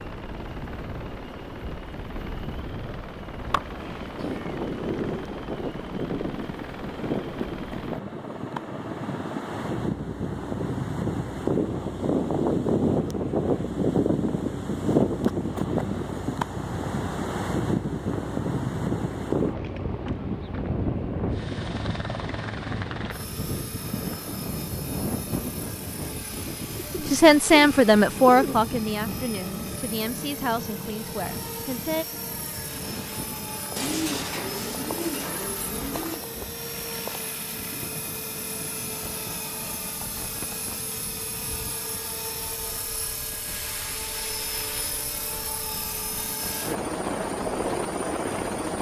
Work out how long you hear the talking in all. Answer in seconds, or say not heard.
5 s.